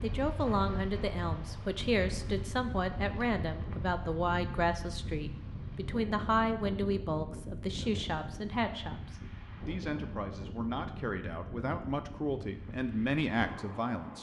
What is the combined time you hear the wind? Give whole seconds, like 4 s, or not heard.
14 s.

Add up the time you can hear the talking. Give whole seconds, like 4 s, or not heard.
14 s.